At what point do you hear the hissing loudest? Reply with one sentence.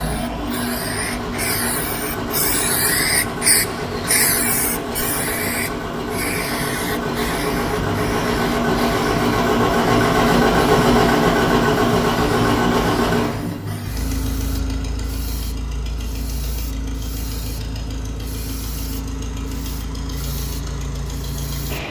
The volume of the hissing peaks at 3 seconds.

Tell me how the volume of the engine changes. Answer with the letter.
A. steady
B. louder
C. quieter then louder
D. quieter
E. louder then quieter
E.